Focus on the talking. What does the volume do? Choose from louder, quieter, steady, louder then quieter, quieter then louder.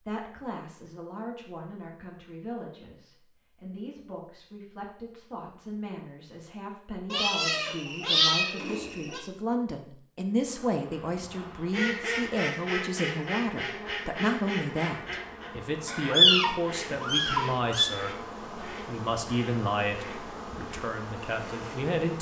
louder.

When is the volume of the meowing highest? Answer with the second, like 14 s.
16 s.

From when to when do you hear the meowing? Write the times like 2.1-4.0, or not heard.
7.1-9.2, 15.8-17.9.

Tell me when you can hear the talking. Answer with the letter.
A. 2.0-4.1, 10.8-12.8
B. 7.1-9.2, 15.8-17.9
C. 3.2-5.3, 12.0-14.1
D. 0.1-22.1
D.